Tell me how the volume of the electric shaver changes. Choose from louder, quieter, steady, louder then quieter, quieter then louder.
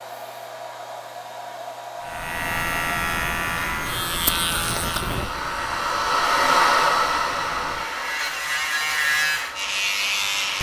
quieter then louder.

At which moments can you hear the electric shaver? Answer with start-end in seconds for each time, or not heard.
2.0-10.5.